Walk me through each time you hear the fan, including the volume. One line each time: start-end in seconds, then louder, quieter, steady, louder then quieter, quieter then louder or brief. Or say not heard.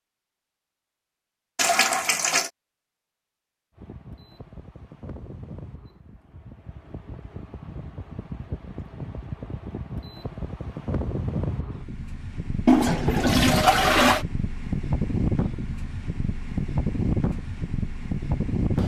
3.8-18.8 louder.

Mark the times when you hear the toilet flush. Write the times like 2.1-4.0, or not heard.
1.6-2.5, 12.7-14.2.